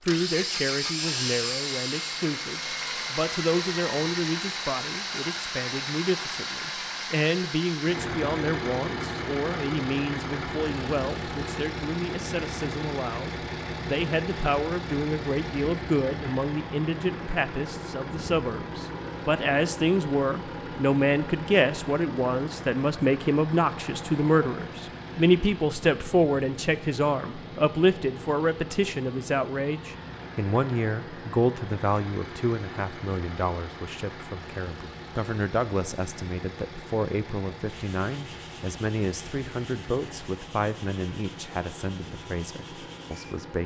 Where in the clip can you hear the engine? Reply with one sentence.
You can hear the engine from 0.1 to 43.6 s.